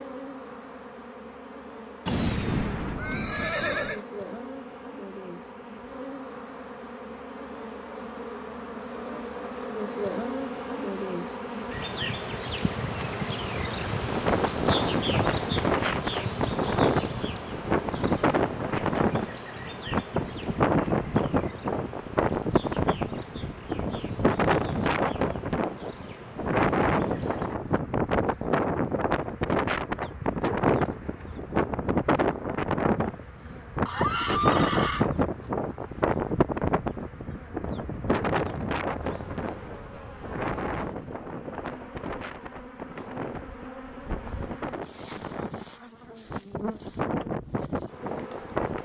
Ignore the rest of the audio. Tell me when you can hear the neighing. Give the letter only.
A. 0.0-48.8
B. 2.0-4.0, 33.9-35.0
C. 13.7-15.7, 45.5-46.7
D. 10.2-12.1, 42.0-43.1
B.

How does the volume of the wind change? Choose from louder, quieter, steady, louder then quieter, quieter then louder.
quieter.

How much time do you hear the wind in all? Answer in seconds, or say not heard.
35 s.